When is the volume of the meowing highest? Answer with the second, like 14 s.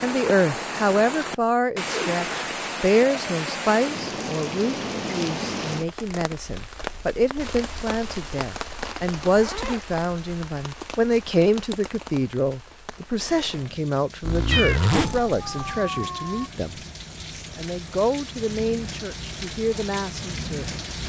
15 s.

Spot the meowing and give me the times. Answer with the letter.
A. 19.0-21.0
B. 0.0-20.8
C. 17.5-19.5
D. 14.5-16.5
D.